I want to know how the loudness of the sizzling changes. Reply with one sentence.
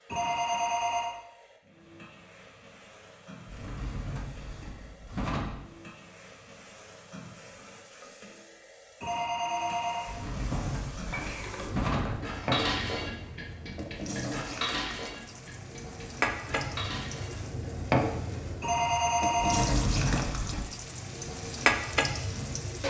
The loudness of the sizzling goes up.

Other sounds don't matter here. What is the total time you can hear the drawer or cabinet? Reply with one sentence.
The drawer or cabinet can be heard for 6 seconds in total.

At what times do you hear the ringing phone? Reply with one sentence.
You can hear the ringing phone from 0.1 to 1.2 s, from 9.0 to 10.7 s and from 18.6 to 20.4 s.